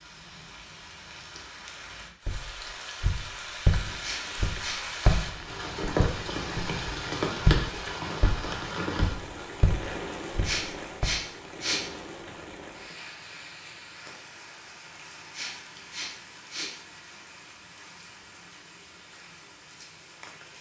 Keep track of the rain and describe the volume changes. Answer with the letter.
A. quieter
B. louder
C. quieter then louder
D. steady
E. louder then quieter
E.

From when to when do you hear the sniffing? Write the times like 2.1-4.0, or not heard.
4.0-4.8, 10.4-11.8, 15.3-16.7.